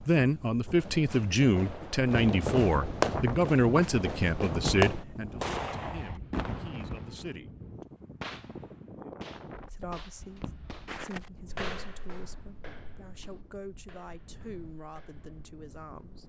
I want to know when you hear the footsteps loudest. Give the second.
12 s.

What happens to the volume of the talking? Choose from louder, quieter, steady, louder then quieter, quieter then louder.
quieter.